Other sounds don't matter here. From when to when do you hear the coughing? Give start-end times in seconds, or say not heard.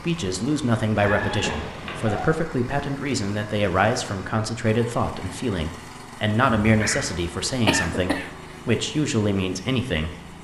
7.5-8.8.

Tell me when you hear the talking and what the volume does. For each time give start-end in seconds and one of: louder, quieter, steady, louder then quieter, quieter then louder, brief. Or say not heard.
0.0-10.2 steady.